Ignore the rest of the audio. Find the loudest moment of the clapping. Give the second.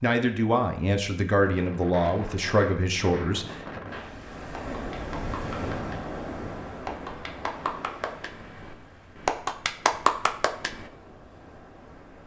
10 s.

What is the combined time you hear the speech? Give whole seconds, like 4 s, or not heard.
4 s.